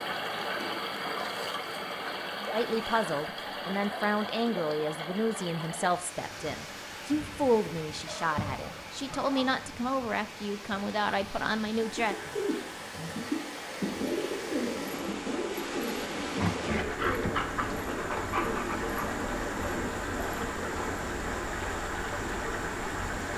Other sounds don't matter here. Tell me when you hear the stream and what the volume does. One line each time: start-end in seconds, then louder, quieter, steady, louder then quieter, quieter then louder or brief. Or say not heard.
0.0-23.3 quieter then louder.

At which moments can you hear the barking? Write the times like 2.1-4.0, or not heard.
8.1-9.6, 16.3-19.1.